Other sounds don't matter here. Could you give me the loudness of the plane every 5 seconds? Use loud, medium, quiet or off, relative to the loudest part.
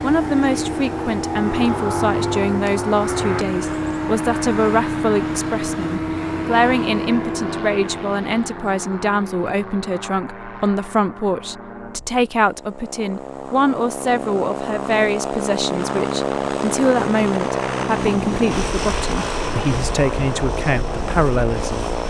loud, loud, medium, loud, loud.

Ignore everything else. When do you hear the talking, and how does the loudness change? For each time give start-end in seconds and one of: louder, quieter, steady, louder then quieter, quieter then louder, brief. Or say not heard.
0.0-21.9 steady.